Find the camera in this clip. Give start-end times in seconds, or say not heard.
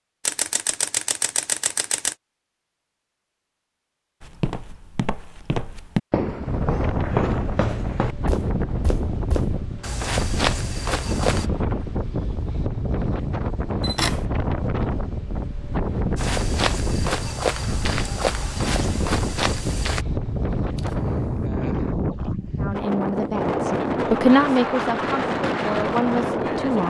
0.2-2.1, 13.8-14.2, 20.8-21.4.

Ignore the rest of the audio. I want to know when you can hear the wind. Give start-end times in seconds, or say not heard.
6.4-26.8.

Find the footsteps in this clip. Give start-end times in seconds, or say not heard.
4.2-11.5, 16.1-20.1.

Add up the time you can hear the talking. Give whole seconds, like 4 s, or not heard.
4 s.